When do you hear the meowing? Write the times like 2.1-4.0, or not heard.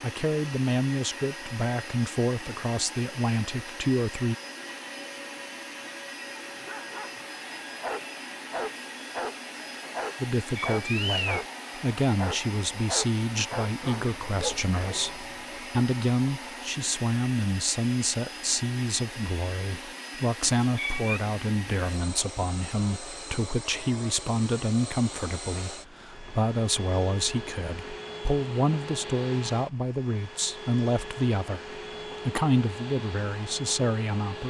10.6-11.4, 20.6-21.2.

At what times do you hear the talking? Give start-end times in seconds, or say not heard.
0.0-4.3, 10.2-31.6, 32.2-34.4.